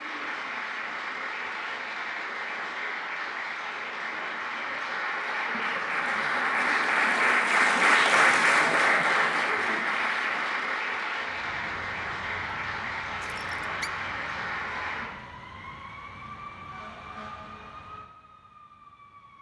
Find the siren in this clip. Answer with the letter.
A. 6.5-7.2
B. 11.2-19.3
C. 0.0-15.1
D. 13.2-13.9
B.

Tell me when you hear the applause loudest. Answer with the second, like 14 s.
8 s.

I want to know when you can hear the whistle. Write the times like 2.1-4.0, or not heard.
13.2-13.9.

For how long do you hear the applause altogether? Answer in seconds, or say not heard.
15 s.